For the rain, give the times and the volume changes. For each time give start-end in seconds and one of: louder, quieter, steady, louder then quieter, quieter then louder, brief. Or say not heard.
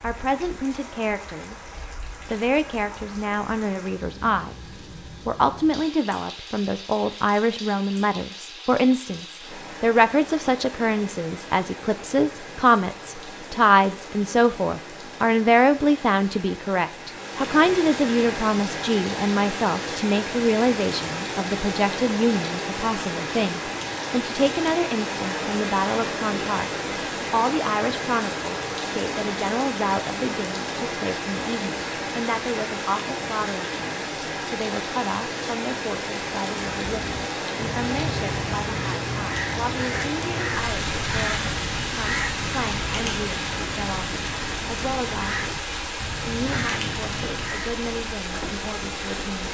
0.0-49.4 louder.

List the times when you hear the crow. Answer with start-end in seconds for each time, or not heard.
36.7-47.8.